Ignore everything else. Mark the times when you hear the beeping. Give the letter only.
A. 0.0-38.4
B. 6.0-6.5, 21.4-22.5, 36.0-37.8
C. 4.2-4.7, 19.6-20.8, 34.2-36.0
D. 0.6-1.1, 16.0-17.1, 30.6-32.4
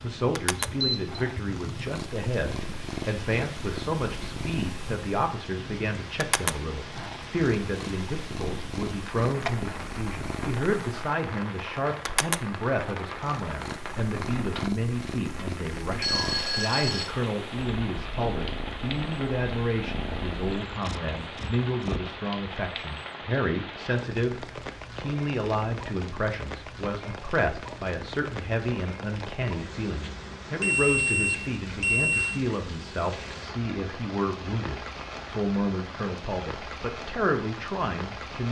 D.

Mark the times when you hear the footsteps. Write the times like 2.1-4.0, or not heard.
not heard.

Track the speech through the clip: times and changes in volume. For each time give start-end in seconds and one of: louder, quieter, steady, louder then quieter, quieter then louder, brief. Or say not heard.
0.0-38.4 steady.